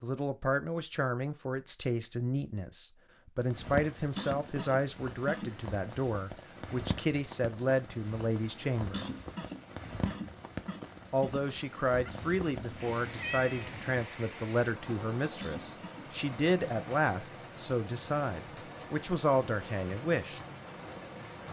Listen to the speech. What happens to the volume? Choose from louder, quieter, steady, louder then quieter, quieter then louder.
steady.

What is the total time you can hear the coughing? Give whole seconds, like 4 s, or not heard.
5 s.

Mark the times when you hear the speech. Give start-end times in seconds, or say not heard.
0.0-9.1, 11.1-20.4.